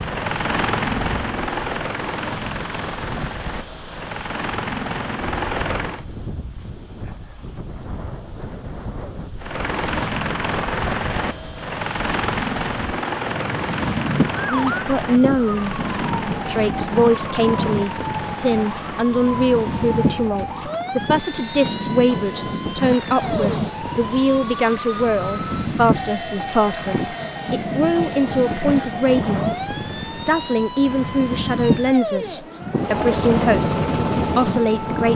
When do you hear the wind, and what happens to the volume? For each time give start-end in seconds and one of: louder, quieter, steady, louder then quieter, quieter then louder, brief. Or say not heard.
0.0-35.1 louder.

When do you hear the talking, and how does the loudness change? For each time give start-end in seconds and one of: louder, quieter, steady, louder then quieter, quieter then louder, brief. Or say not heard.
14.4-15.8 brief
16.4-35.1 steady.